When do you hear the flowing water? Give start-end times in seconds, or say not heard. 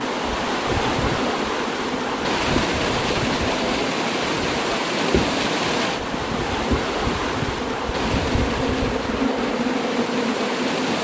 0.0-11.0.